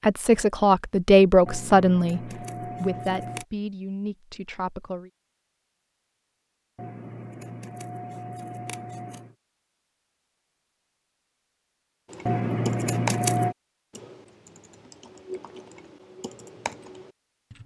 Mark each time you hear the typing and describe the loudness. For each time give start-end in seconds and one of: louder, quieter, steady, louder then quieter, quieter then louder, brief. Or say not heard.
12.1-17.6 quieter then louder.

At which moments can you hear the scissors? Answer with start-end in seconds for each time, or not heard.
1.4-3.5, 6.8-9.3, 12.2-13.6.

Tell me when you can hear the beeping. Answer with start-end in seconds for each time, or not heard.
not heard.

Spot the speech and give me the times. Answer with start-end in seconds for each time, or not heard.
0.0-2.2, 2.8-5.1.